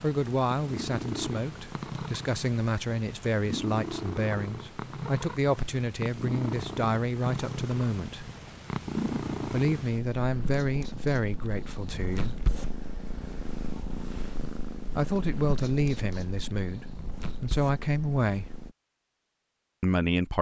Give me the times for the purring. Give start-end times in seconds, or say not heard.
0.0-18.8.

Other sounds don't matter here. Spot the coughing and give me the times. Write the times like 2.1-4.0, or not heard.
not heard.